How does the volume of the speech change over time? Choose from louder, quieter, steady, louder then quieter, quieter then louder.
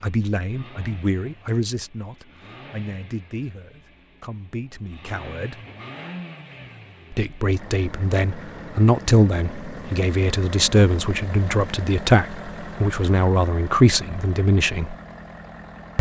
quieter then louder.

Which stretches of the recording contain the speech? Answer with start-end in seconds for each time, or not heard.
0.0-5.6, 7.1-14.9.